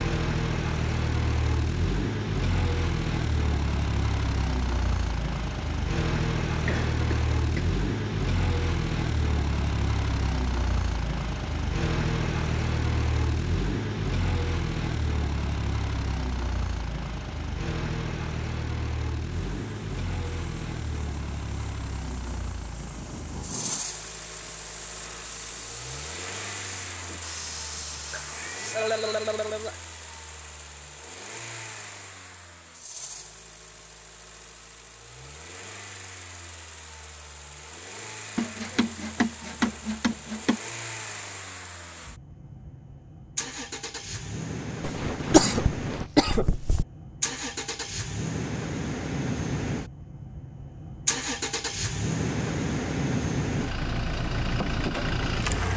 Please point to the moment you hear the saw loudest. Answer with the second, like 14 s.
40 s.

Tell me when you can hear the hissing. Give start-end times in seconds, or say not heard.
19.2-28.8.